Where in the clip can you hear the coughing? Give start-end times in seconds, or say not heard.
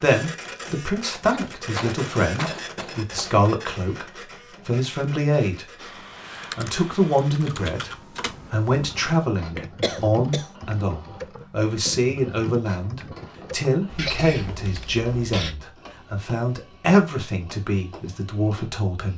1.6-3.4, 9.8-10.4, 13.9-15.6.